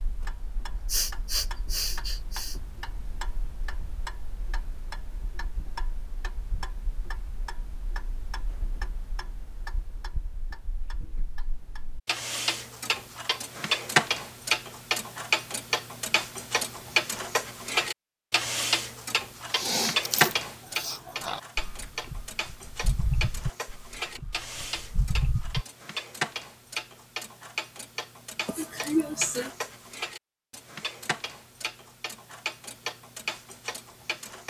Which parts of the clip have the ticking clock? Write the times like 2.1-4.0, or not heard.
0.0-34.4.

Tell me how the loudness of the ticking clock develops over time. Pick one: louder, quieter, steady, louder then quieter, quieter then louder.
louder then quieter.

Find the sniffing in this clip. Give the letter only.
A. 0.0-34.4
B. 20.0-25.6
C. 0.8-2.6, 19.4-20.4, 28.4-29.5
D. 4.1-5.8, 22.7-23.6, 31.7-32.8
C.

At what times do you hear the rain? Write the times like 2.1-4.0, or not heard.
not heard.